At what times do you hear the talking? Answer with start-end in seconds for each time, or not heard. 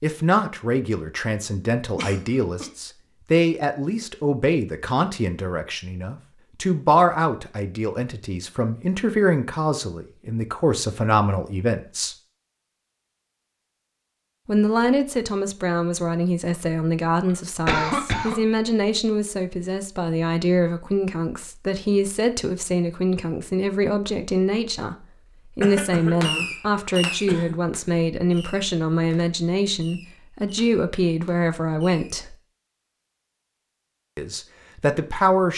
0.0-12.2, 14.4-32.4, 34.1-35.5.